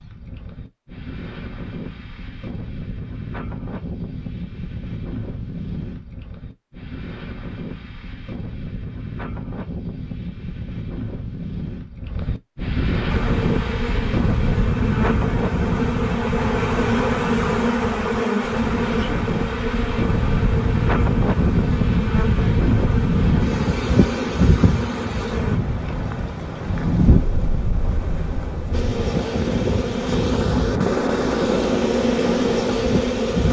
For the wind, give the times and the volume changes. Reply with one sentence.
You can hear the wind from 0.0 to 33.4 s, getting louder.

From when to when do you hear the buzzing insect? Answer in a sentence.
You can hear the buzzing insect from 13.1 to 25.6 s and from 28.7 to 33.4 s.